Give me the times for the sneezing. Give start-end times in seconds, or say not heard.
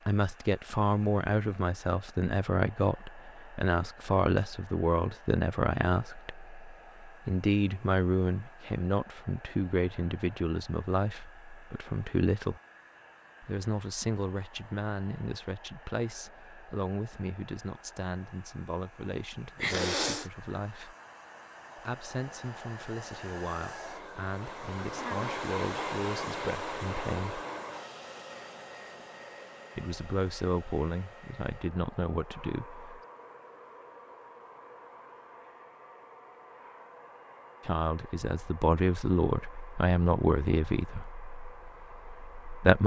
19.6-20.3.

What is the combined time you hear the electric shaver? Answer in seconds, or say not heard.
not heard.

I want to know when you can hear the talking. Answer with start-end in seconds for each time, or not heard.
0.1-12.6, 13.4-20.9, 21.8-27.4, 29.8-33.0, 37.6-42.8.